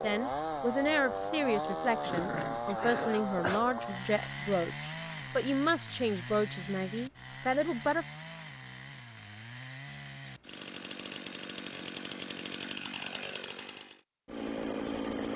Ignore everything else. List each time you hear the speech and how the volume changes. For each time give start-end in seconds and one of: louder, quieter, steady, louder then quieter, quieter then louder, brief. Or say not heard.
0.0-8.1 steady.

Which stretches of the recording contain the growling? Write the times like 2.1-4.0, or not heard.
2.0-3.6.